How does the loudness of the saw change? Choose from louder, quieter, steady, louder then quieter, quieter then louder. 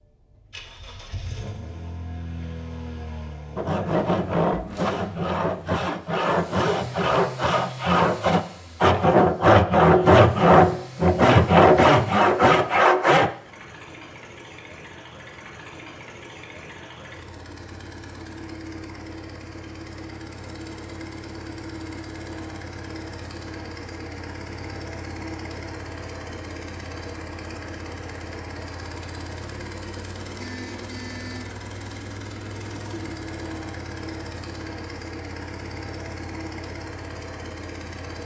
louder.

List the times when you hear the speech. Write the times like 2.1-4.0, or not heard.
not heard.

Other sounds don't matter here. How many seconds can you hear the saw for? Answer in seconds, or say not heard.
10 s.